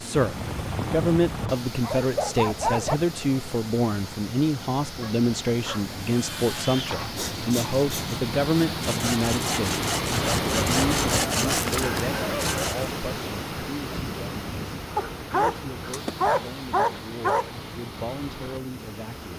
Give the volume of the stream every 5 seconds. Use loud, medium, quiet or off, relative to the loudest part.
medium, loud, loud, medium.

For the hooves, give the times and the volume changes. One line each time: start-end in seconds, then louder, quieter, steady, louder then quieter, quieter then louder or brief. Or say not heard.
not heard.